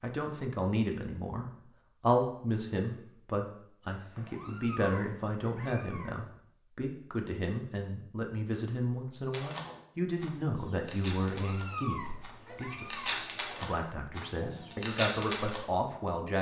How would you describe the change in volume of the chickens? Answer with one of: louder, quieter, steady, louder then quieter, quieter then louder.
louder.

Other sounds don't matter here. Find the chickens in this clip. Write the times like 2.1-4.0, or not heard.
9.3-15.6.